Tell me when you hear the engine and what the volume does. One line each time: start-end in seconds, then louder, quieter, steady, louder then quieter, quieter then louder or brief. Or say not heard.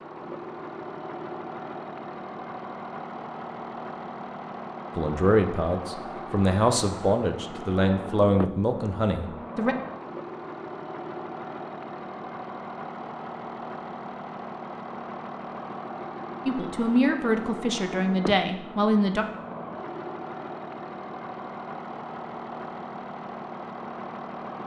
0.0-24.6 steady.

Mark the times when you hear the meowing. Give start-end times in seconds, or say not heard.
not heard.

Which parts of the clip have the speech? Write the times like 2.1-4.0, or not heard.
5.0-9.8, 16.4-19.2.